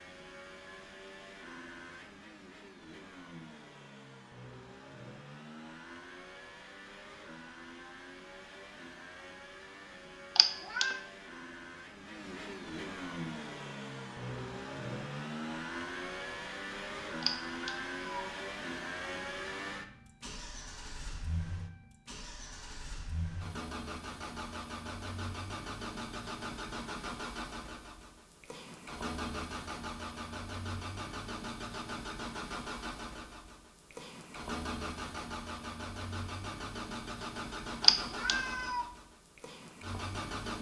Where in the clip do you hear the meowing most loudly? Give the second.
38 s.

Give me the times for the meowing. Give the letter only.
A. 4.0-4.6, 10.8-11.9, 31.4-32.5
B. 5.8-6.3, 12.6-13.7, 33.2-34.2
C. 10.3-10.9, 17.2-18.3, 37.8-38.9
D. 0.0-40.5
C.